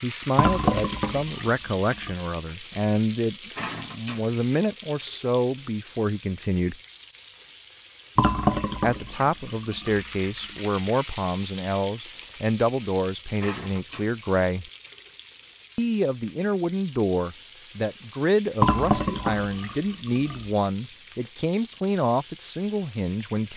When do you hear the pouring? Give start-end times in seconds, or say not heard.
0.3-2.1, 8.2-10.1, 18.6-20.5.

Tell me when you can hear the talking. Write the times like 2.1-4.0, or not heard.
0.0-6.8, 8.8-14.7, 15.8-23.5.